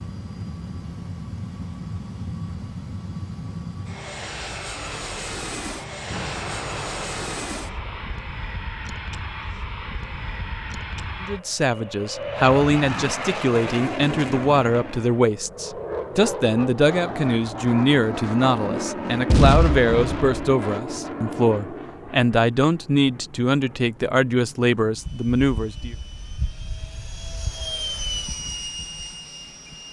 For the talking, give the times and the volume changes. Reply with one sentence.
The talking can be heard from 11.2 to 25.9 s, at a steady volume.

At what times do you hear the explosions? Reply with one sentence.
You can hear the explosions from 6.1 to 8.2 s and from 19.2 to 20.5 s.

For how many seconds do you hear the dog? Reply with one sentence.
You can't hear the dog here.